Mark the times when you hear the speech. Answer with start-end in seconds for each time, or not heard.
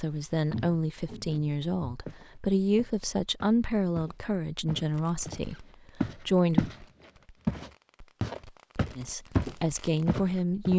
0.0-6.7, 8.9-10.7.